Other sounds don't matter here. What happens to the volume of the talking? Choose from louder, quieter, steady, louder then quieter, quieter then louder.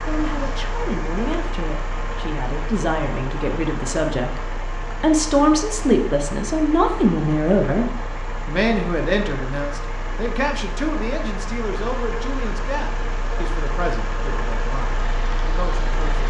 louder then quieter.